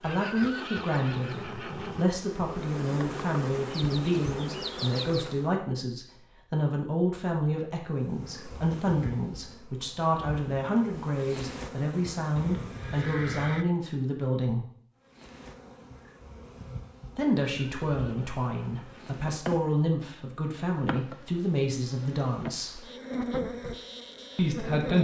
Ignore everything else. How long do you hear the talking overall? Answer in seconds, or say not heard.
21 s.